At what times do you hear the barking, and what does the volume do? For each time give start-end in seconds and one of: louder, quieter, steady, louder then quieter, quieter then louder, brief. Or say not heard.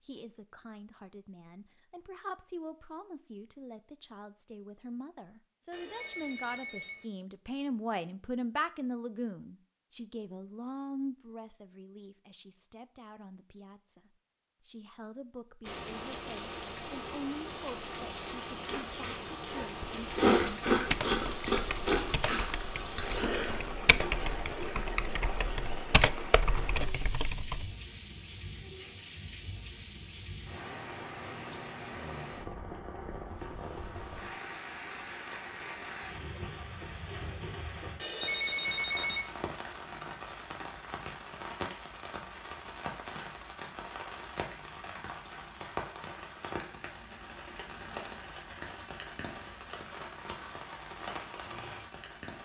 not heard.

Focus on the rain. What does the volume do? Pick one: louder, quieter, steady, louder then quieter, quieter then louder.
steady.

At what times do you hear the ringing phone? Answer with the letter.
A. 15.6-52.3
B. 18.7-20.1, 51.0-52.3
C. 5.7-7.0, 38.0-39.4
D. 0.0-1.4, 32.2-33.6
C.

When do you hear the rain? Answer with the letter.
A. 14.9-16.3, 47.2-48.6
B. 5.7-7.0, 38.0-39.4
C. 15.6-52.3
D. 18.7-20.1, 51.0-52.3
C.